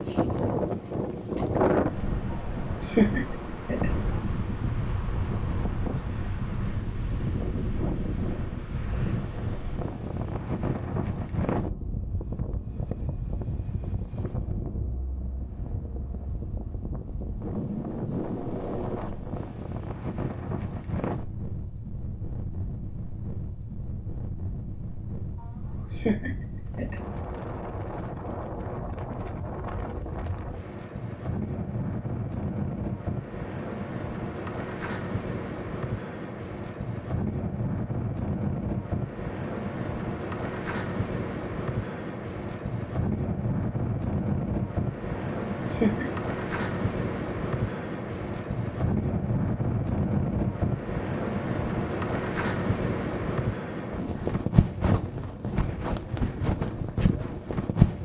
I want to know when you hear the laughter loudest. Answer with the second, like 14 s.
3 s.